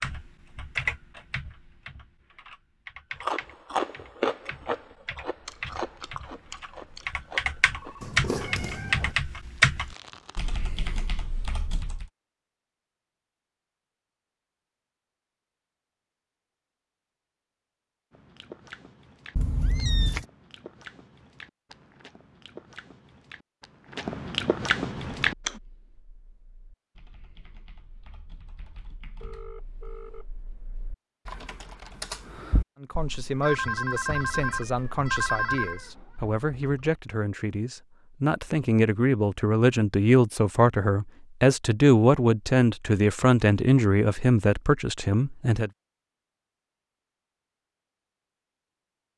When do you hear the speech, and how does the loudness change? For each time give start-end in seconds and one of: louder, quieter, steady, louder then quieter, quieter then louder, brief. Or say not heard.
32.8-45.7 louder.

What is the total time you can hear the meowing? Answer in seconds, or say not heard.
4 s.